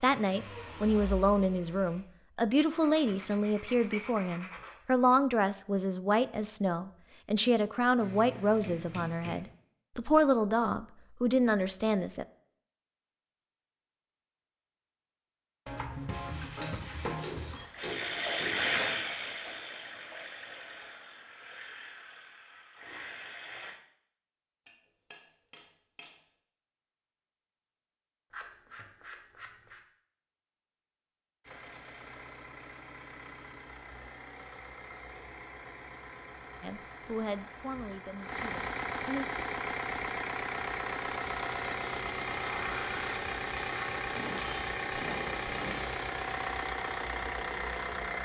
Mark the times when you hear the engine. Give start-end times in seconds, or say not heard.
0.0-2.0, 17.5-23.8, 31.4-48.2.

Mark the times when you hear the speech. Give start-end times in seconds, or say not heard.
0.0-12.2, 36.6-39.5.